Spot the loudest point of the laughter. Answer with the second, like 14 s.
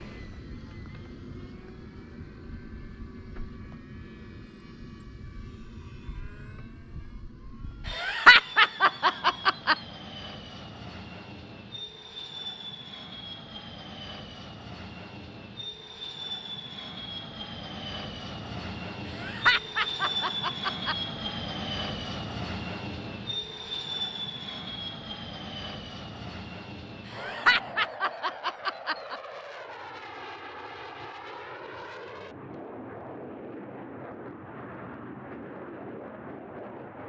8 s.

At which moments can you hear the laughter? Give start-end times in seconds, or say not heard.
7.9-9.8, 19.1-21.0, 27.1-29.2.